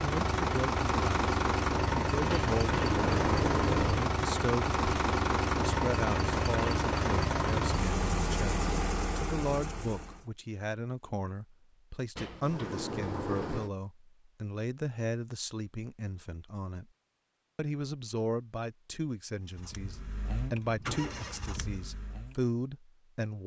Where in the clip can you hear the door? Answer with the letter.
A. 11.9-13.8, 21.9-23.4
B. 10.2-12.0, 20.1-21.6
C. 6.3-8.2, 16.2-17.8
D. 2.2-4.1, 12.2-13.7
D.